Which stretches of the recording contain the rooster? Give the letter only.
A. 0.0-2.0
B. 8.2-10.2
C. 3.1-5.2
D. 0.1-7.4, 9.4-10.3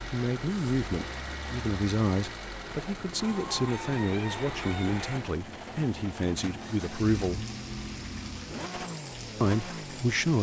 C.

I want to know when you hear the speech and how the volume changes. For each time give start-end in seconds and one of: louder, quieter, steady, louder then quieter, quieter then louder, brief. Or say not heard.
0.1-7.4 steady
9.4-10.3 brief.